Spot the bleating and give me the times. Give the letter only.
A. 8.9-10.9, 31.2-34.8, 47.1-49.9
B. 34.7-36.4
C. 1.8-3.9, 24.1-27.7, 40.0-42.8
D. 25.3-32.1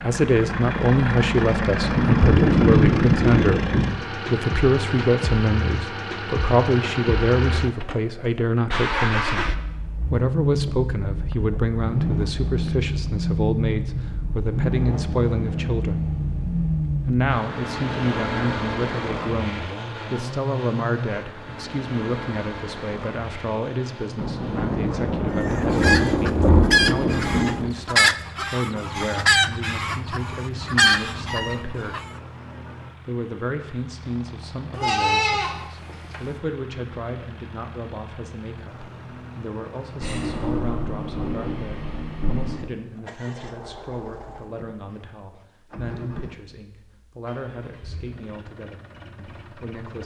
B.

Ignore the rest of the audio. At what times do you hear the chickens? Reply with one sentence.
You can hear the chickens from 25.3 to 32.1 s.